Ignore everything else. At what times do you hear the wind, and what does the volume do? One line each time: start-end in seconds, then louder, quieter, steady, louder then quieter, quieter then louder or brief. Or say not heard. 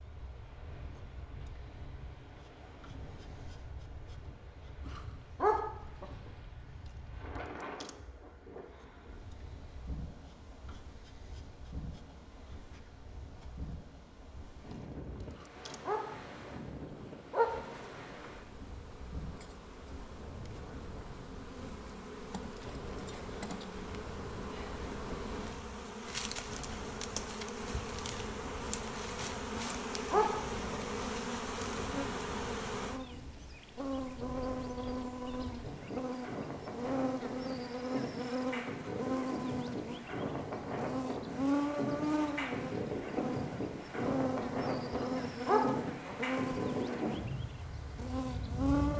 0.0-48.9 louder.